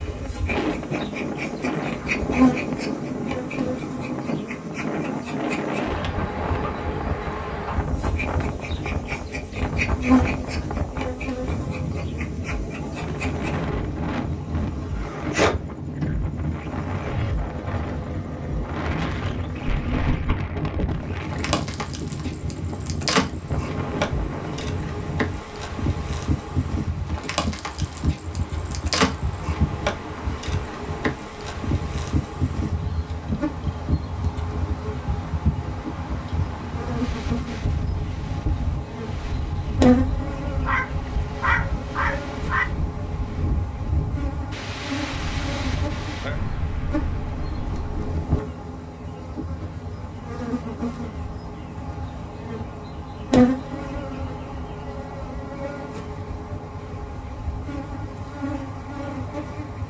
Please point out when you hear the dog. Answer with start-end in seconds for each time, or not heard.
40.6-42.6.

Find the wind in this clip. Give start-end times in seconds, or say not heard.
0.0-48.6.